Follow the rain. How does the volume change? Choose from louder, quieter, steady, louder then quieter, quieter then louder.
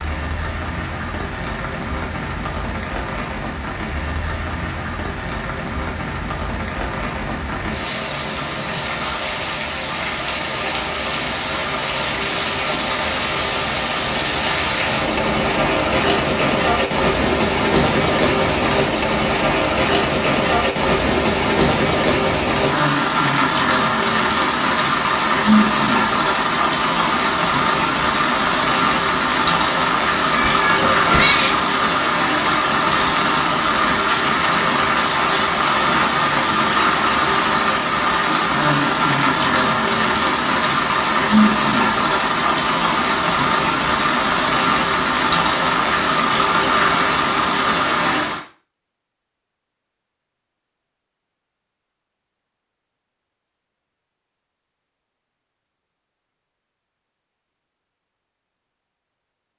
louder.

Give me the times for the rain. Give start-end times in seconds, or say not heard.
0.0-48.5.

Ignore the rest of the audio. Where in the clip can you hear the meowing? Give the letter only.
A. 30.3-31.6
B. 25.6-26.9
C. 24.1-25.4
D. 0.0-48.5
A.